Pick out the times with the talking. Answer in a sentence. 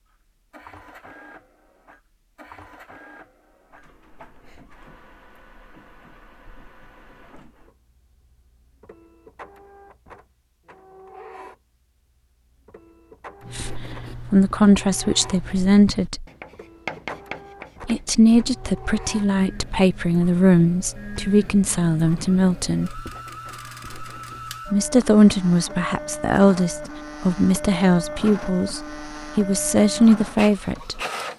You can hear the talking from 13.6 to 16.2 s, from 17.9 to 23.1 s and from 24.6 to 31.0 s.